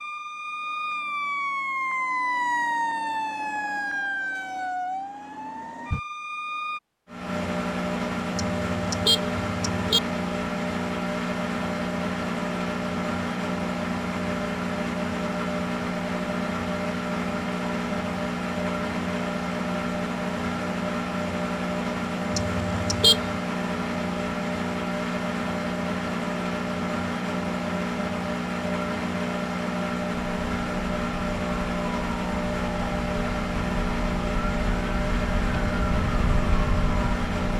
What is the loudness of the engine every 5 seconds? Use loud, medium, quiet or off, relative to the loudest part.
off, loud, loud, loud, loud, loud, loud, loud.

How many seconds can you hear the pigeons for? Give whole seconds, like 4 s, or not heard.
not heard.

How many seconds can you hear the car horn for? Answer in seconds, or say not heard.
3 s.